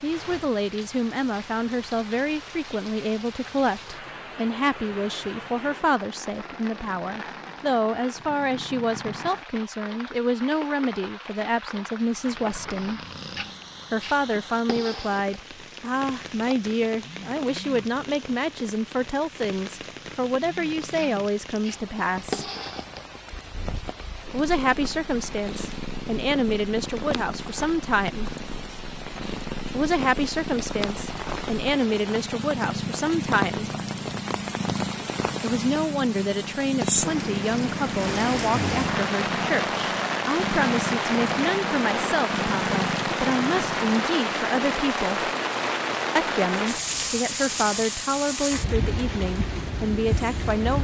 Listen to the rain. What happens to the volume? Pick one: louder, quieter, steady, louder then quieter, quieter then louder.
louder.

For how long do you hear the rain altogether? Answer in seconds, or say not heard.
51 s.